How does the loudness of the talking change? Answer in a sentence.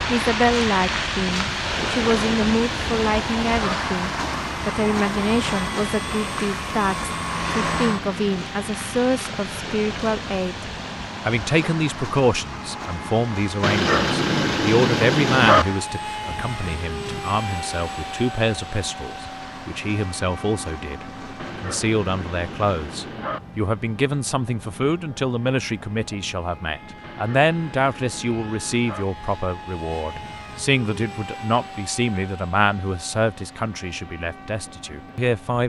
The loudness of the talking stays about the same.